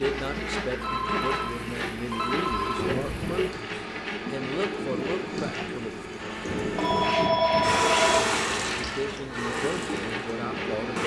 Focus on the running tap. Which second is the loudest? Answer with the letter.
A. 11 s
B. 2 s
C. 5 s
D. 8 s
D.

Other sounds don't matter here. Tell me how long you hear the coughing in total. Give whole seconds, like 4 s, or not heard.
2 s.